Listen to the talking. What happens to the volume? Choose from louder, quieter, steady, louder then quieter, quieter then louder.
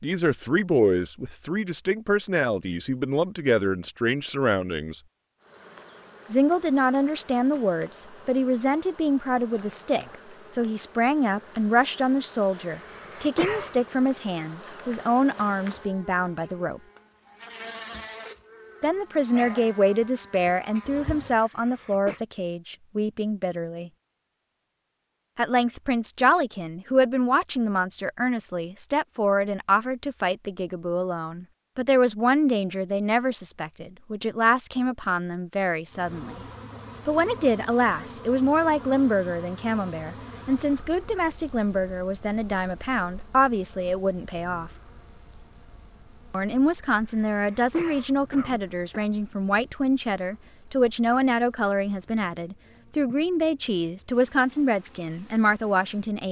steady.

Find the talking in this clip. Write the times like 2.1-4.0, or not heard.
0.0-5.0, 6.3-16.8, 18.8-23.9, 25.4-36.4, 37.0-44.7, 46.3-56.2.